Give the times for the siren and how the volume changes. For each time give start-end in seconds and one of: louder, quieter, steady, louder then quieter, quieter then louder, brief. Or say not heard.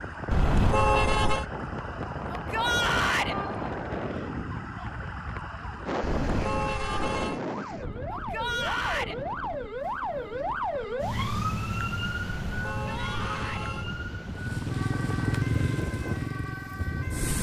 0.0-17.3 louder then quieter.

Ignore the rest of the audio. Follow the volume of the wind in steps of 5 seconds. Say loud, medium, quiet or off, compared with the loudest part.
loud, loud, medium, loud.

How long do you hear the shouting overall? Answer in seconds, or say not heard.
3 s.